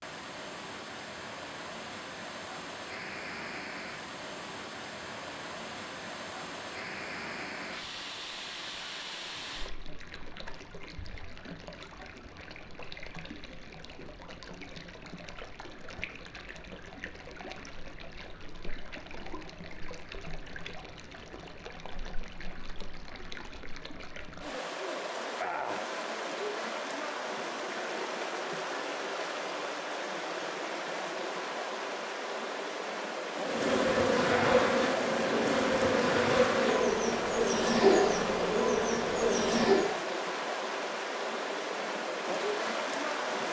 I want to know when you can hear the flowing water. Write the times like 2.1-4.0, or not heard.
0.0-43.4.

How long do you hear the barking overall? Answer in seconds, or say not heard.
not heard.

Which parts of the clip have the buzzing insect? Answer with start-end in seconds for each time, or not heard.
33.4-40.0.